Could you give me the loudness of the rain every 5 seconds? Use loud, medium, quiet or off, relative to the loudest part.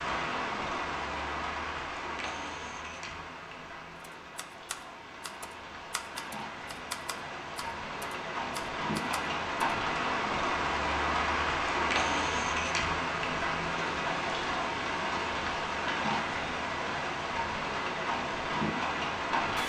medium, medium, loud, loud.